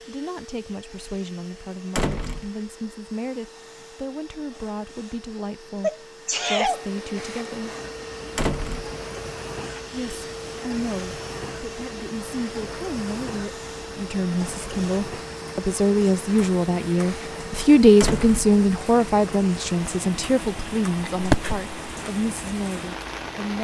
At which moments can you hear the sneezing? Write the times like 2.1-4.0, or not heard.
5.8-6.8, 21.0-21.6.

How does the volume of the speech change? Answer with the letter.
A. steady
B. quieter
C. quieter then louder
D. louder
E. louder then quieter
E.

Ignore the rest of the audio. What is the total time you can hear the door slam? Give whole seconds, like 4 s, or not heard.
2 s.